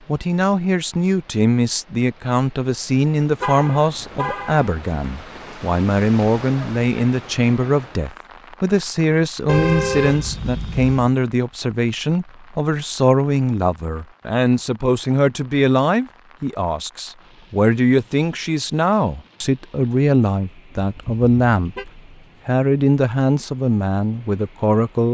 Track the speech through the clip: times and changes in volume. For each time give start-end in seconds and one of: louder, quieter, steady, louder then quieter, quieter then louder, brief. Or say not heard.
0.1-25.0 steady.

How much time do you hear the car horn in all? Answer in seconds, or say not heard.
4 s.